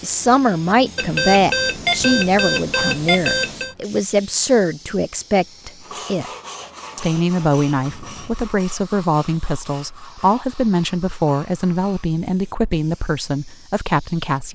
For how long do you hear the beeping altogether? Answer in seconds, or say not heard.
3 s.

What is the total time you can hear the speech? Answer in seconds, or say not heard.
14 s.